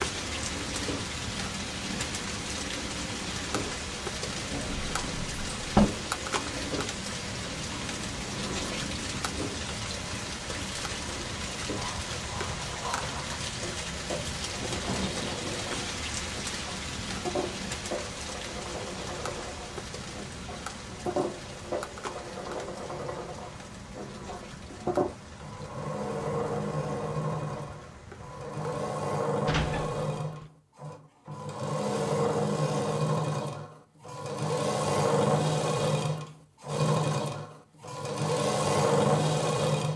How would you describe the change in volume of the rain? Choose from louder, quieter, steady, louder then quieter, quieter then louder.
quieter.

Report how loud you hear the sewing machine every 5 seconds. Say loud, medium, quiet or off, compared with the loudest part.
quiet, quiet, quiet, quiet, medium, medium, loud, loud.